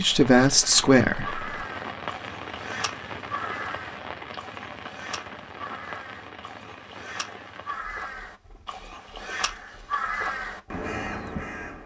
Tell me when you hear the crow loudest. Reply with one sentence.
The loudest moment of the crow is at 10 seconds.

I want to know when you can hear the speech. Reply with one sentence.
You can hear the speech from 0.0 to 1.4 s.